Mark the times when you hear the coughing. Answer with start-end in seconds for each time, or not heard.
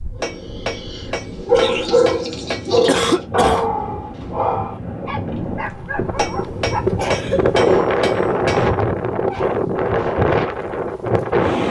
2.9-3.6, 7.0-7.6.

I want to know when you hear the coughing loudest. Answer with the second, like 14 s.
3 s.